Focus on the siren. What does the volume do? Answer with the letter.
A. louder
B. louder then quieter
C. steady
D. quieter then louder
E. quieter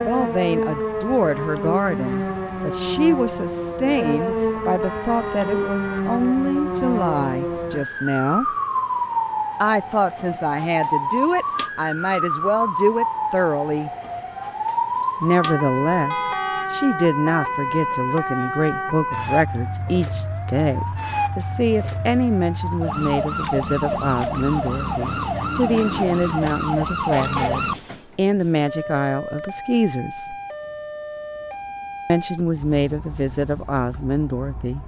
E.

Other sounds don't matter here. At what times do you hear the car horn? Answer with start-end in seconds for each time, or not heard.
4.8-6.0, 16.1-16.7, 27.1-27.7.